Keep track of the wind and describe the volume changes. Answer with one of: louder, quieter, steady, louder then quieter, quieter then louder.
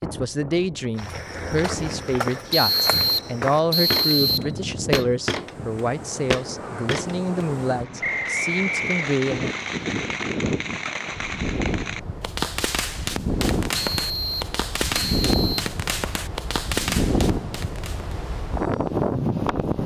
louder.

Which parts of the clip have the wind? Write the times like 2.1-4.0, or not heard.
0.0-19.8.